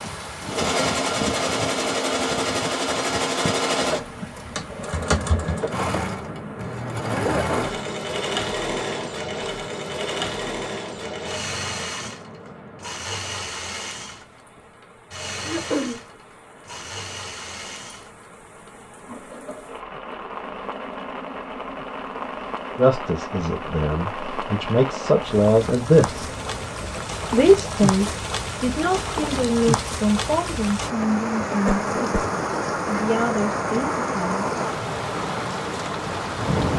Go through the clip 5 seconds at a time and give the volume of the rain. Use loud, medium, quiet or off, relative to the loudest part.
medium, medium, quiet, quiet, medium, loud, loud, loud.